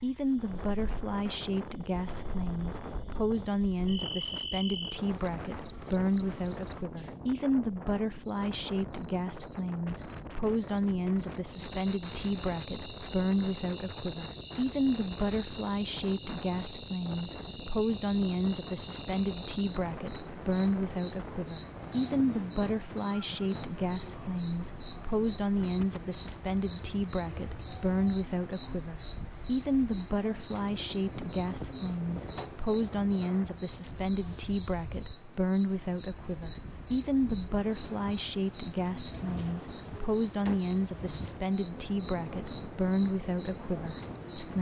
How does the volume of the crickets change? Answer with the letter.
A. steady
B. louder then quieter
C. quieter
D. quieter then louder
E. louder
A.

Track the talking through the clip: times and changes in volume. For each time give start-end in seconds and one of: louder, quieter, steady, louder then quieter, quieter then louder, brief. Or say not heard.
0.0-44.5 steady.